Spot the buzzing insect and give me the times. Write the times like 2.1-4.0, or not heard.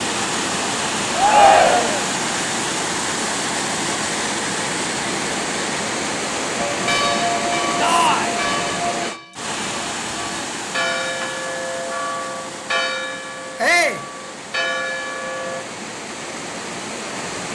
not heard.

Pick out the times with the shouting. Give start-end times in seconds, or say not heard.
1.1-2.0, 7.8-8.4, 13.6-14.1.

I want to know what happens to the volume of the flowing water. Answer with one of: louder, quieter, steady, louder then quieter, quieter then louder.
quieter.